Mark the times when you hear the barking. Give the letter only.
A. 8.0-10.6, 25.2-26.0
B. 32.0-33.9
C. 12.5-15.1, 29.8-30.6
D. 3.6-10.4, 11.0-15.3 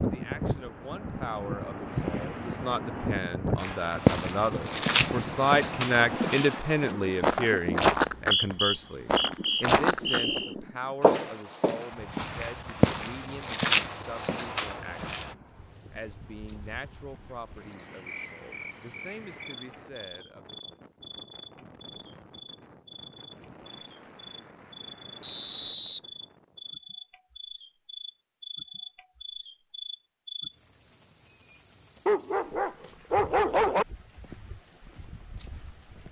B.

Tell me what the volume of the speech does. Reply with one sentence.
The loudness of the speech goes up, then down.